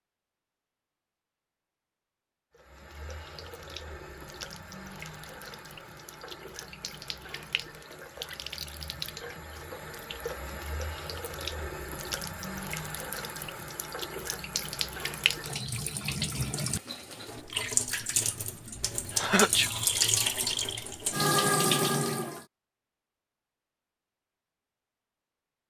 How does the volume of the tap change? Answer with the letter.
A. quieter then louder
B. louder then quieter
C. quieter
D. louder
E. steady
D.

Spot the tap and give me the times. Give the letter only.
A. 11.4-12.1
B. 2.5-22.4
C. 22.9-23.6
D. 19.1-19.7
B.